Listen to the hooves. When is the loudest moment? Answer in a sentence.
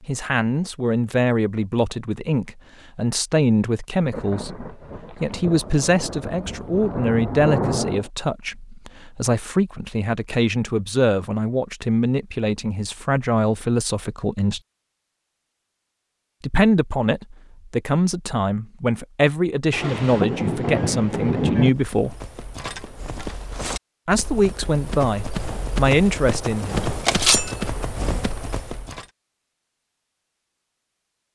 The volume of the hooves peaks at 27 seconds.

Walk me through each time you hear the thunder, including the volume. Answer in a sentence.
You can hear the thunder from 4.1 to 8.1 s, getting louder; and briefly from 19.7 to 21.7 s.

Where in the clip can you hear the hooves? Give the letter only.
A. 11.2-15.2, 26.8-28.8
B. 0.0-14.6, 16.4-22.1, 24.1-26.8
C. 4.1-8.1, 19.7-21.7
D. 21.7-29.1
D.